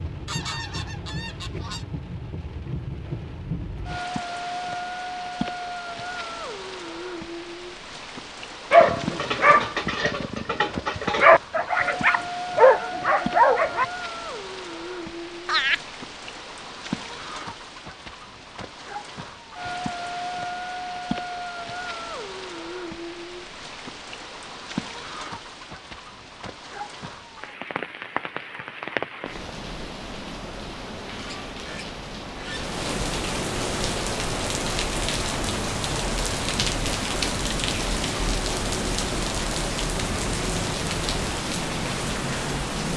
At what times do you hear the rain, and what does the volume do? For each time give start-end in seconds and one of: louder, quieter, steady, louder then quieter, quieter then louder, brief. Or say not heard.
0.0-42.9 louder.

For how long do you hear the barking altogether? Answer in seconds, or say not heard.
5 s.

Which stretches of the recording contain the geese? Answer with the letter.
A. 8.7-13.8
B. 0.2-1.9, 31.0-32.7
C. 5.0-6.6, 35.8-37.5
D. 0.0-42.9
B.